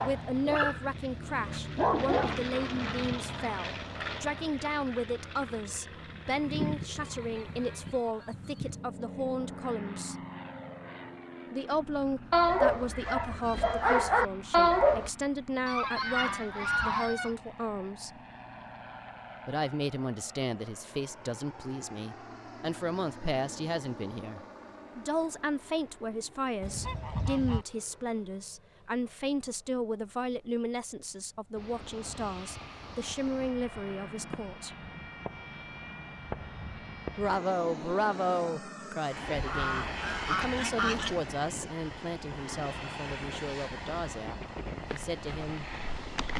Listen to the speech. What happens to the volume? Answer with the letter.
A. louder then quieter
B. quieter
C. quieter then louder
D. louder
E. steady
E.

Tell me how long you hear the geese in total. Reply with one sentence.
You can hear the geese for 7 seconds altogether.